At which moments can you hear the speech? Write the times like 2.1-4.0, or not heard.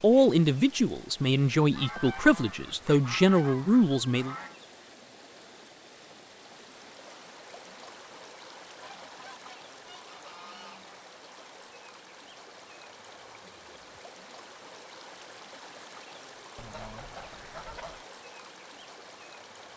0.0-4.3.